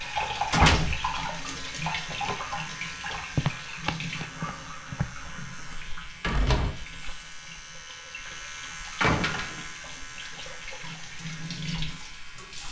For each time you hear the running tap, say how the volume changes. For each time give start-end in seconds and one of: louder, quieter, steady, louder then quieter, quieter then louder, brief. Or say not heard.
0.0-12.6 quieter then louder.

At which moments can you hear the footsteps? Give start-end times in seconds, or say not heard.
3.4-5.1.